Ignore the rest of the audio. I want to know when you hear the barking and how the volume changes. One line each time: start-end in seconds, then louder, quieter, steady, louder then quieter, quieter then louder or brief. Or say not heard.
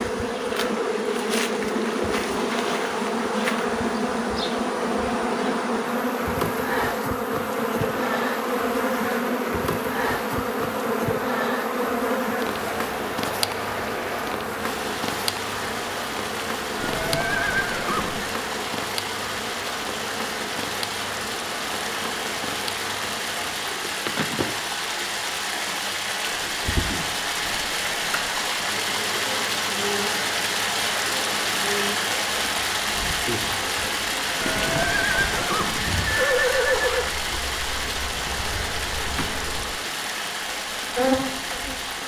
not heard.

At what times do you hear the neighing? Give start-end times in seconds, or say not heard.
16.8-18.4, 34.4-37.0.